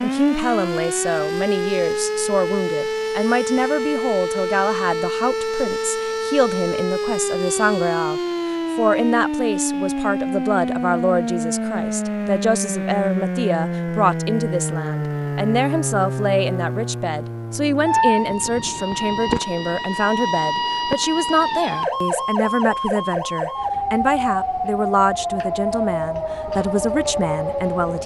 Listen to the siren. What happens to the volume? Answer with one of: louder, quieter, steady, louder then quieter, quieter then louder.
steady.